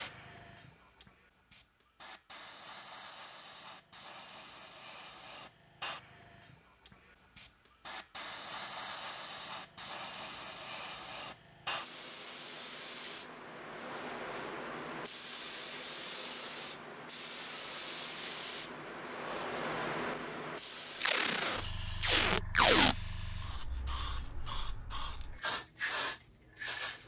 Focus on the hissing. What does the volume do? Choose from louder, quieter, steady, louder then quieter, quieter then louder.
louder.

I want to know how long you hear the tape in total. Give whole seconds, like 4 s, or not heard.
2 s.